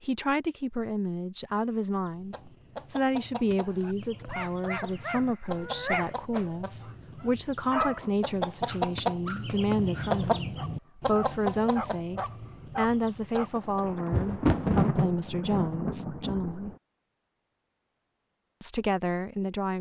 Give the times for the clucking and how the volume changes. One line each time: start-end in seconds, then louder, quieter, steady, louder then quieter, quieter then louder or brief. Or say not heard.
2.0-14.0 louder then quieter.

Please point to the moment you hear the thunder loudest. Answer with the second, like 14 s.
15 s.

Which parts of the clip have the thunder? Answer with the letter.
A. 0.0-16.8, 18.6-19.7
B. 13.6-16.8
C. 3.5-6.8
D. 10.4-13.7
B.